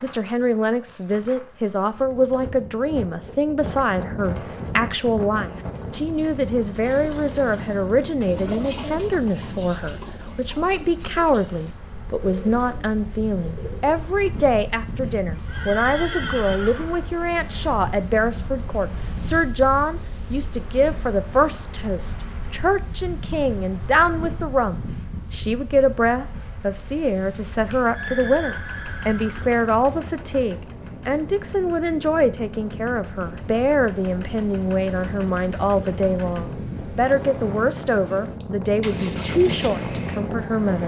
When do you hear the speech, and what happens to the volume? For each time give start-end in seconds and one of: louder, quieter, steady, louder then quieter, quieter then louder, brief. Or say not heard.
0.0-40.8 steady.